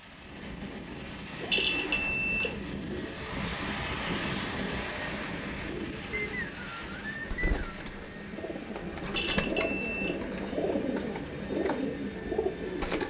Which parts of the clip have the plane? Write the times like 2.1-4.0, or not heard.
0.0-13.0.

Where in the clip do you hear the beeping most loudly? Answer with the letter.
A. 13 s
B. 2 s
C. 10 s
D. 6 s
B.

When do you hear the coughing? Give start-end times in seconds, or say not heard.
not heard.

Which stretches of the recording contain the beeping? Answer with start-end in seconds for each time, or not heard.
1.5-2.5, 9.2-10.5.